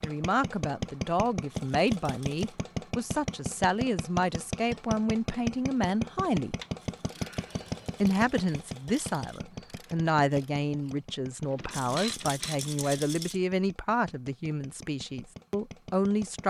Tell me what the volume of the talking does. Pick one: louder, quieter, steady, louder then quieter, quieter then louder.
steady.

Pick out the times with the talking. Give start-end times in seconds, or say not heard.
0.0-6.5, 8.0-16.4.